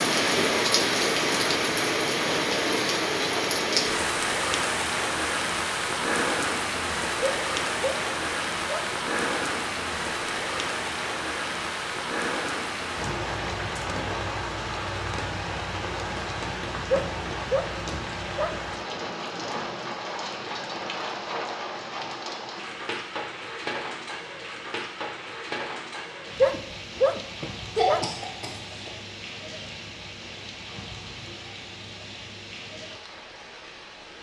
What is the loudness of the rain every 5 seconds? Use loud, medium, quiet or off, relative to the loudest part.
loud, loud, medium, medium, medium, quiet, quiet.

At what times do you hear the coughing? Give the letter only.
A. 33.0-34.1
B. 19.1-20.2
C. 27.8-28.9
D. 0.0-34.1
C.